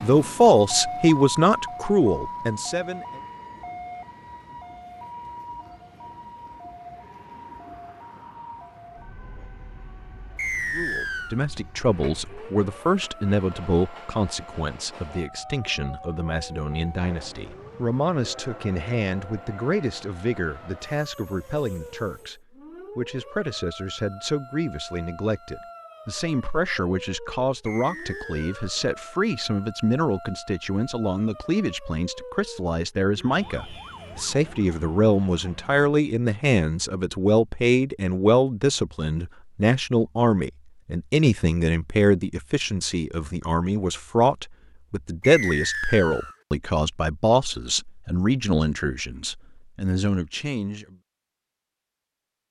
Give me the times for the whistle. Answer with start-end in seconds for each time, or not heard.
10.3-11.4, 27.6-28.6, 45.2-46.4.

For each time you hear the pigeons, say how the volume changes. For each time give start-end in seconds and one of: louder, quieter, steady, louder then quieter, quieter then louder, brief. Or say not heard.
not heard.